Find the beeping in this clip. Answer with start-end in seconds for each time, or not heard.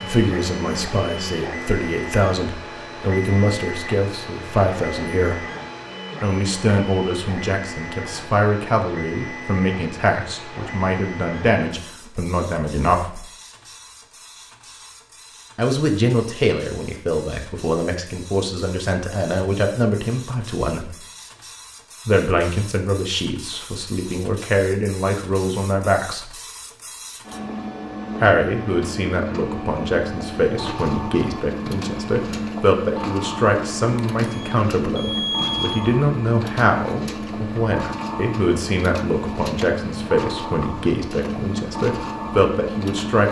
34.0-35.9.